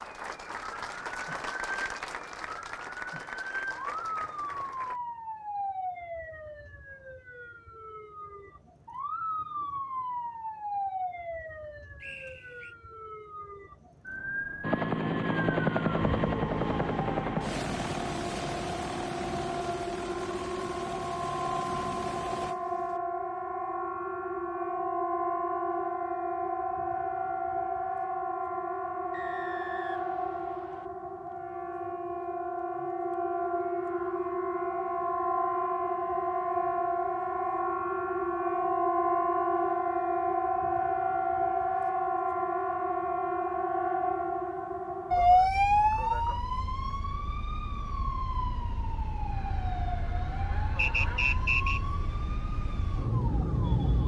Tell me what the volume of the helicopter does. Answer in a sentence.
The loudness of the helicopter goes down.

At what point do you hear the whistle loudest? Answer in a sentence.
The loudest moment of the whistle is at 51 seconds.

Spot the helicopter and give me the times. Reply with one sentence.
You can hear the helicopter from 14.6 to 23.0 s.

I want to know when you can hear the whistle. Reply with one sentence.
The whistle can be heard from 12.0 to 12.8 s, from 29.1 to 30.9 s and from 50.8 to 51.8 s.